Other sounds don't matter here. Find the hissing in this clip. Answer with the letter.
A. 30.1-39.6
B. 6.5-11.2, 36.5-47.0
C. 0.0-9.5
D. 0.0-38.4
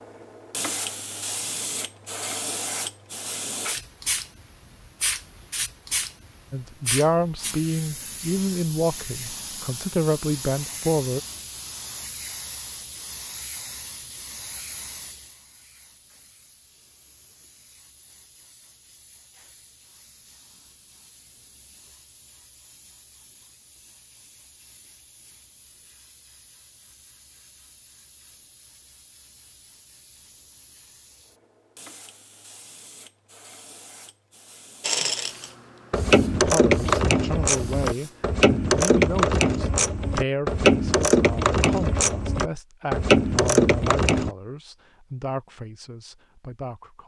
D.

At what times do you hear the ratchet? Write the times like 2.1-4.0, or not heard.
34.8-44.3.